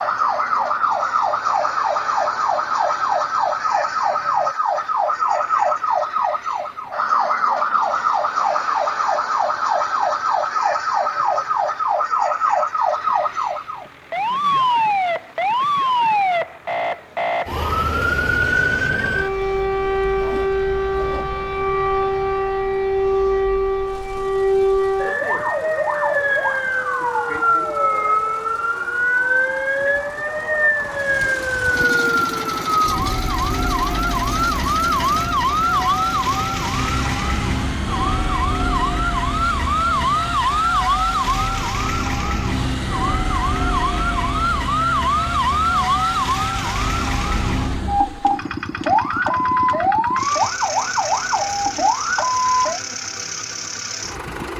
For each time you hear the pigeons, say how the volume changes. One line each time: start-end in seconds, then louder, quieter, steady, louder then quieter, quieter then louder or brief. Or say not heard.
not heard.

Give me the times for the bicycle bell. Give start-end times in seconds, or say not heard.
not heard.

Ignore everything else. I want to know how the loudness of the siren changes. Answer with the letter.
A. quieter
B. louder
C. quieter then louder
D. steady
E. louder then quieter
D.